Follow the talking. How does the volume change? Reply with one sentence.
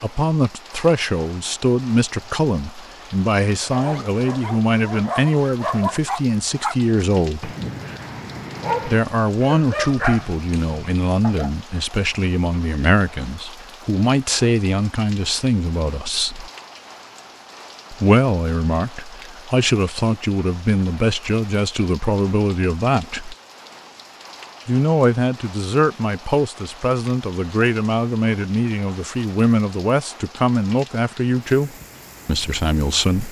The volume of the talking stays about the same.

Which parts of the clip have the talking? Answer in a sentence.
The talking can be heard from 0.0 to 7.5 s, from 8.8 to 16.5 s, from 17.9 to 23.4 s and from 24.6 to 33.2 s.